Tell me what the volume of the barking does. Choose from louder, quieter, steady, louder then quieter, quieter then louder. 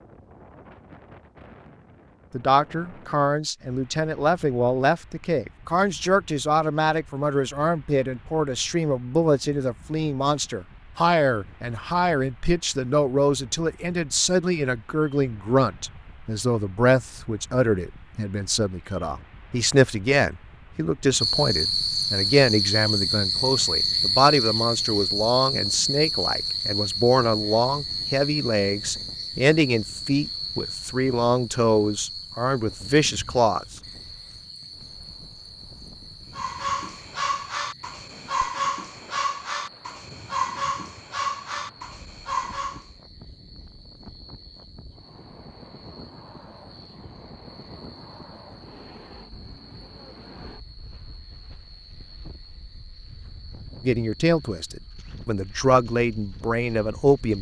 steady.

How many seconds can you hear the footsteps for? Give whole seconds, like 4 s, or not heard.
not heard.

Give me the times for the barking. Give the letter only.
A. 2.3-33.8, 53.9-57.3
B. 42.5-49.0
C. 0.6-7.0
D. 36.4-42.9
D.